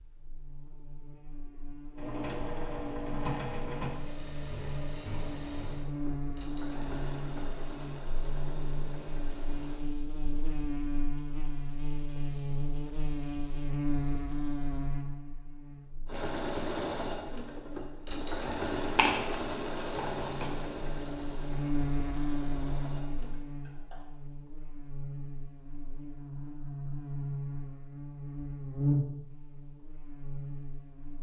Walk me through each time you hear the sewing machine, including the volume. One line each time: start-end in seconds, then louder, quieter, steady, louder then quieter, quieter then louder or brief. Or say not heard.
1.9-9.8 quieter
16.1-24.1 quieter.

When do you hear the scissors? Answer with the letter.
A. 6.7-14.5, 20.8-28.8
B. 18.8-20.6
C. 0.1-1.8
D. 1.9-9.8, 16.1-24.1
B.